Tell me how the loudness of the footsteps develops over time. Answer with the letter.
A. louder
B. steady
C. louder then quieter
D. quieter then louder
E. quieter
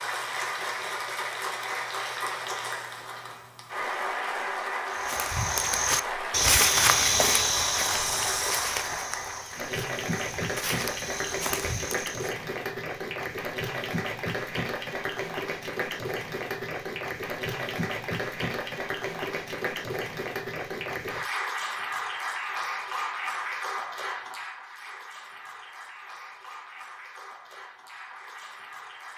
D.